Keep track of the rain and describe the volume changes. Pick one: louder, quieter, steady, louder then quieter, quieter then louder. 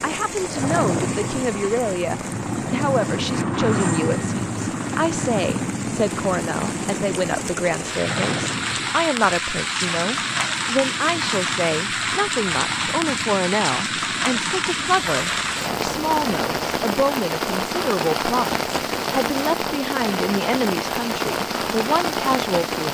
louder.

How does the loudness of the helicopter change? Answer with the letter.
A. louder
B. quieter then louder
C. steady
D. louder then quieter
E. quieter
E.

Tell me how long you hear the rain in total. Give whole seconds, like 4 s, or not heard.
23 s.